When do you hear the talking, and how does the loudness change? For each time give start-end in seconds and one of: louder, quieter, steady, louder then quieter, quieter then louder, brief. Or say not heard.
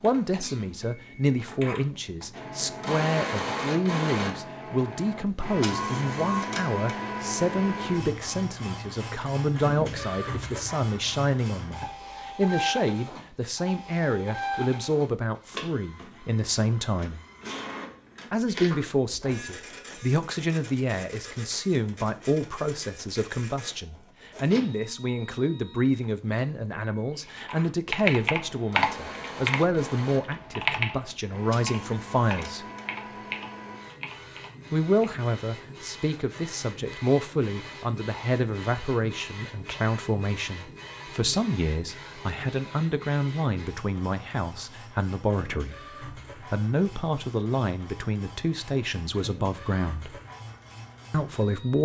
0.0-17.2 steady
18.3-32.6 steady
34.7-50.2 steady
51.1-51.8 brief.